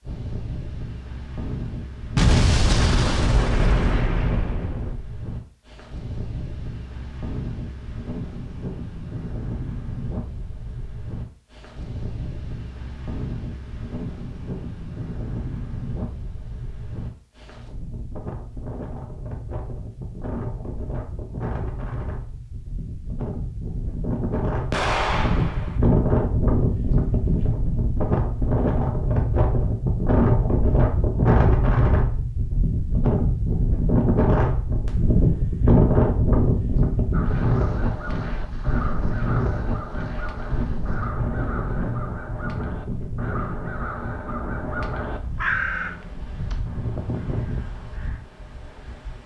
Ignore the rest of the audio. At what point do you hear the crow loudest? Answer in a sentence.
The volume of the crow peaks at 46 seconds.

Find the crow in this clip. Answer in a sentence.
The crow can be heard from 37.1 to 48.2 s.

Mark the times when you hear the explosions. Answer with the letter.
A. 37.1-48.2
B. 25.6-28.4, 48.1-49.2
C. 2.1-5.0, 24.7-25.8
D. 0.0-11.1
C.